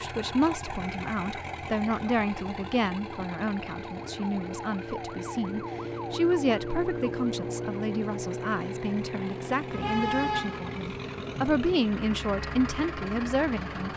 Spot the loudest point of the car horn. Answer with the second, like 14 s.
10 s.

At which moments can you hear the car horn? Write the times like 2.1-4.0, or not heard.
9.7-11.8.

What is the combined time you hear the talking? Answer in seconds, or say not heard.
14 s.